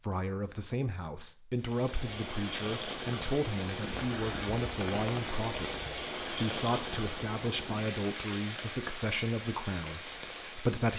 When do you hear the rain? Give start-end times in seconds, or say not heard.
1.6-10.9.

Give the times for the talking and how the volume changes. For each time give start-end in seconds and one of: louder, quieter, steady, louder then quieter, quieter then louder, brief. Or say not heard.
0.0-10.9 steady.